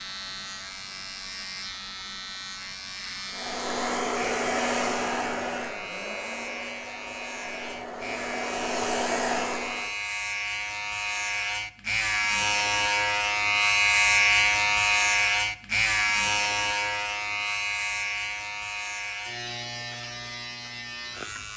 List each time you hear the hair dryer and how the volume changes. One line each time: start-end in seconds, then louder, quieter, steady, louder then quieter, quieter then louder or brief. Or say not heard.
3.3-9.9 quieter then louder.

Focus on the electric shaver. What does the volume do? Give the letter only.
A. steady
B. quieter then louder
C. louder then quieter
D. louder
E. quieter
C.